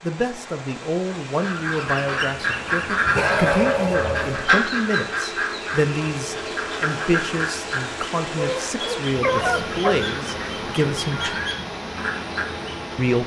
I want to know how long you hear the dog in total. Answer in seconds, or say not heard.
3 s.